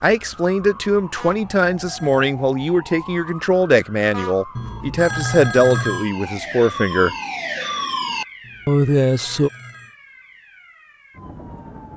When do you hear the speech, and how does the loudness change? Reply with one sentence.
You can hear the speech from 0.0 to 7.2 s, at a steady volume; and briefly from 8.7 to 9.5 s.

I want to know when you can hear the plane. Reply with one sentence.
You can't hear the plane here.